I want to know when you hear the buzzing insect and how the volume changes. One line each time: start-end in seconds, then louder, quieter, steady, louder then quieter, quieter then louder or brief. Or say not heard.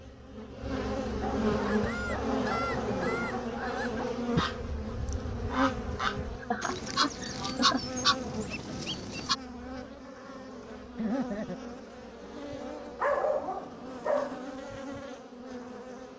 0.0-16.1 quieter.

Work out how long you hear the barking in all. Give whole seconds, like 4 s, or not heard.
4 s.